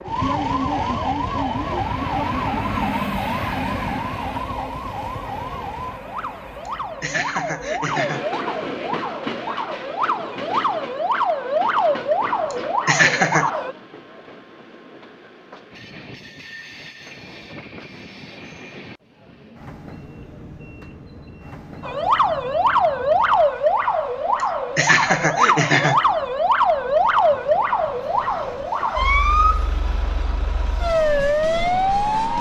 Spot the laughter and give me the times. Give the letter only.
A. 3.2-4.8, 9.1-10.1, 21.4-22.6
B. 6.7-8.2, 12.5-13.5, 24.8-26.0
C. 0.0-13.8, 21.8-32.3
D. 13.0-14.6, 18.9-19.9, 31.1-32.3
B.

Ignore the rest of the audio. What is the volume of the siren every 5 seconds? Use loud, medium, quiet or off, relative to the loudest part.
medium, medium, loud, off, loud, loud, loud.